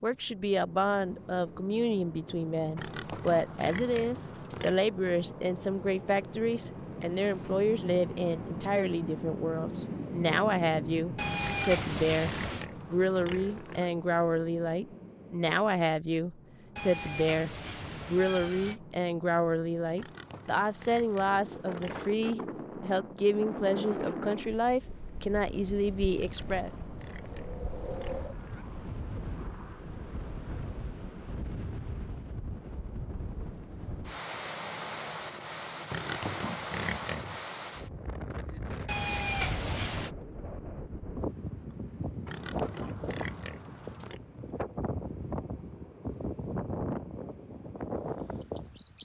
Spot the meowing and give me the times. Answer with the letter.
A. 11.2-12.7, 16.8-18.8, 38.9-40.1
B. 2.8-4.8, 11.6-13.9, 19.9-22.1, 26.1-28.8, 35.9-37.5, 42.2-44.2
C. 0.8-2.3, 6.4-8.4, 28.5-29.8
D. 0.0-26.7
A.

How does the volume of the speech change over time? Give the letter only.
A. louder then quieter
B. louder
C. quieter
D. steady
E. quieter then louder
D.